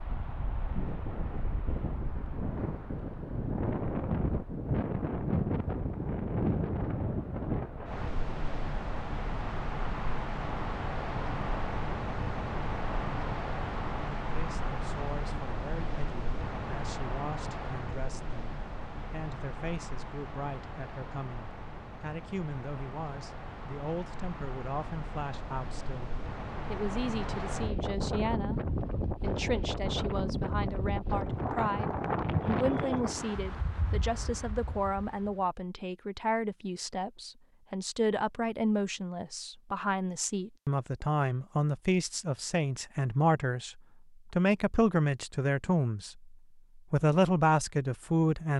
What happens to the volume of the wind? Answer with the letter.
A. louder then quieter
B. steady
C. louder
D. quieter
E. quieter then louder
E.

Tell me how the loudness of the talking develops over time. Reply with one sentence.
The volume of the talking goes up.